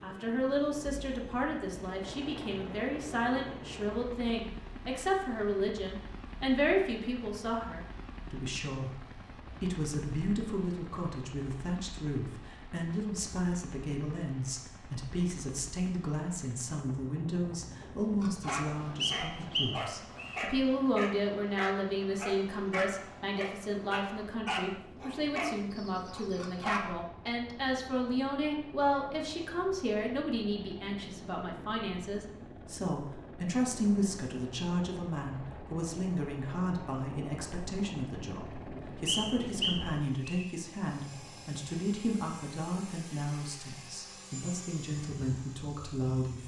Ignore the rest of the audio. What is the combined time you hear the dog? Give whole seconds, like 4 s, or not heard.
9 s.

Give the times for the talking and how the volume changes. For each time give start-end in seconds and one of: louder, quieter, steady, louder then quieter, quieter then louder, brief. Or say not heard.
0.0-46.4 steady.